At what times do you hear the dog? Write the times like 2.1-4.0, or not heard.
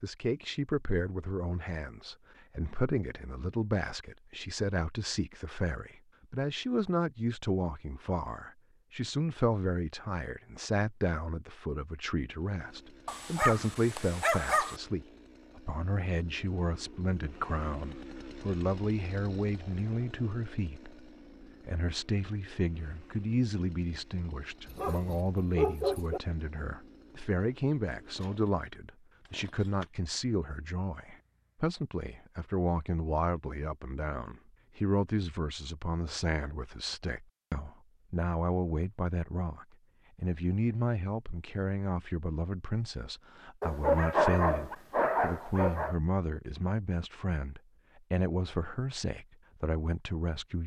13.1-14.8, 24.6-26.2, 43.6-46.0.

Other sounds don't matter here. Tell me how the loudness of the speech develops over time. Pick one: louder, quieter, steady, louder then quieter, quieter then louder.
steady.